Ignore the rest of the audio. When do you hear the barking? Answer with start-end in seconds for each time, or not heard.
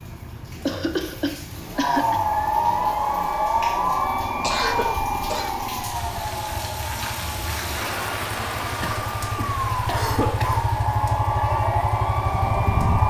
not heard.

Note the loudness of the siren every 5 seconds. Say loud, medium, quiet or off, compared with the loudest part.
loud, medium, loud.